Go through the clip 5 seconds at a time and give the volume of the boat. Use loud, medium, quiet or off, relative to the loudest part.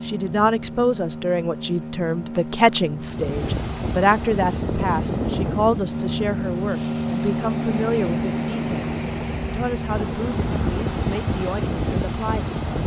medium, loud, medium.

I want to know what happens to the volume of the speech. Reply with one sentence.
The volume of the speech goes down.